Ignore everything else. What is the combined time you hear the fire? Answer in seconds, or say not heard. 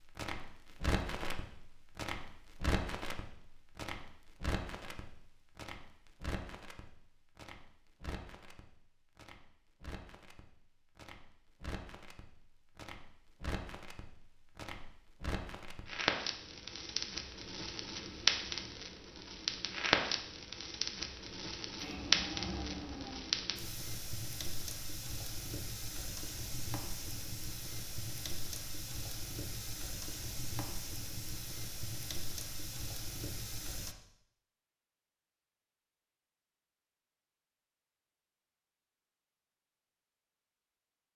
34 s.